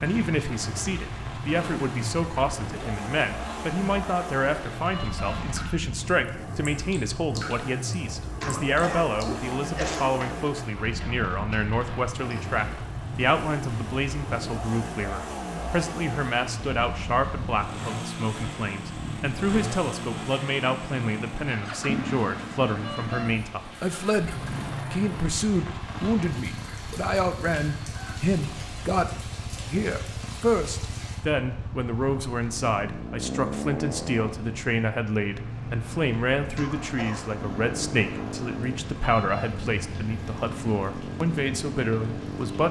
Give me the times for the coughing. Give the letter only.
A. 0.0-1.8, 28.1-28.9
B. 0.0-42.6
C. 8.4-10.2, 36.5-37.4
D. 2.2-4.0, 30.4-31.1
C.